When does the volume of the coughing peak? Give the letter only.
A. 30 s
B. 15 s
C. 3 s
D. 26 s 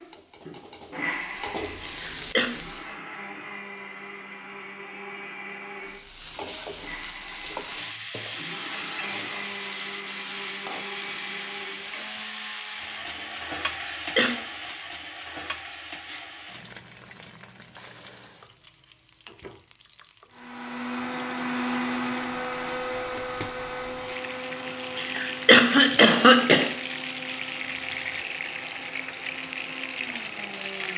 D.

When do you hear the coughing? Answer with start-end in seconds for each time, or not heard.
1.8-2.5, 13.7-14.3, 24.9-26.7.